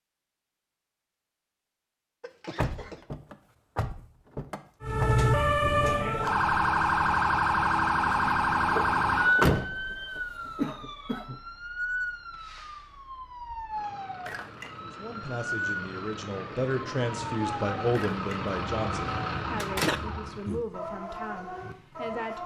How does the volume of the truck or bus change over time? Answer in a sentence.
The volume of the truck or bus goes up.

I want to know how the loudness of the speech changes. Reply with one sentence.
The loudness of the speech goes up, then down.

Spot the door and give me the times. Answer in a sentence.
The door can be heard from 2.5 to 5.1 s, from 8.8 to 10.7 s and from 19.6 to 20.6 s.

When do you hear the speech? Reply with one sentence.
The speech can be heard from 14.8 to 22.4 s.